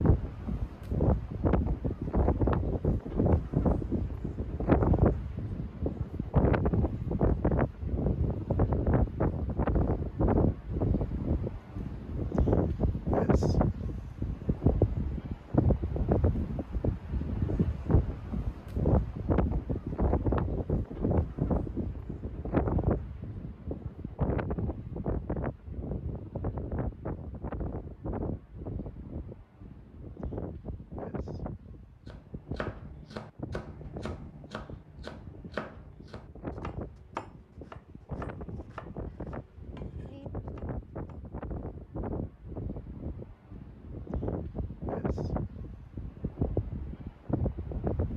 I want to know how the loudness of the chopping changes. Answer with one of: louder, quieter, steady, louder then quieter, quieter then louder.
quieter.